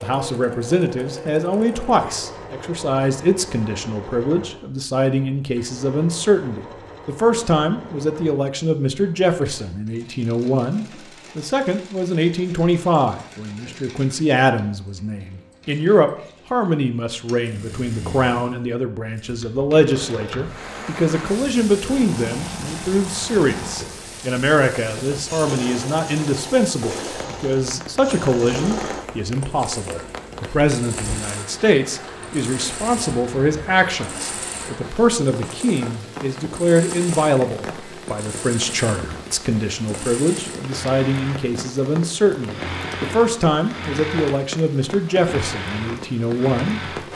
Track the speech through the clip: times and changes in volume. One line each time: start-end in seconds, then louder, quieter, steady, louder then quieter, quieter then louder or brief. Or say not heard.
0.0-47.0 steady.